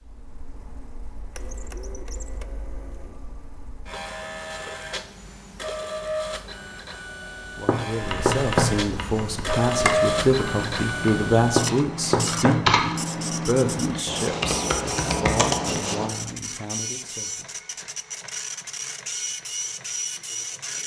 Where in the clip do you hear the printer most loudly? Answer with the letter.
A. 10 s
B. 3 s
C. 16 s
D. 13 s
A.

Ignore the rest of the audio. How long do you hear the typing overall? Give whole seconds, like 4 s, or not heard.
8 s.